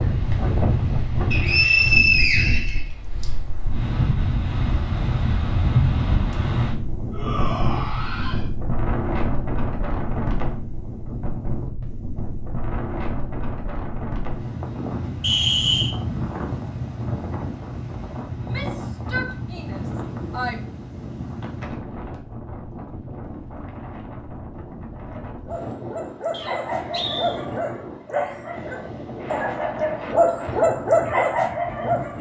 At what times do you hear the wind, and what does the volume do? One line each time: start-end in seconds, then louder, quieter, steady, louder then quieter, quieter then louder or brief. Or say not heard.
0.0-32.1 quieter.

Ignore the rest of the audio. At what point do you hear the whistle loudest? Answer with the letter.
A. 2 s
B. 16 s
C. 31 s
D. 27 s
A.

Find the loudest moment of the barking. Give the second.
31 s.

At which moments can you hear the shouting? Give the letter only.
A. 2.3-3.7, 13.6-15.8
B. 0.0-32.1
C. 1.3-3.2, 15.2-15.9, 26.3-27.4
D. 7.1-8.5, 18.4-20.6
D.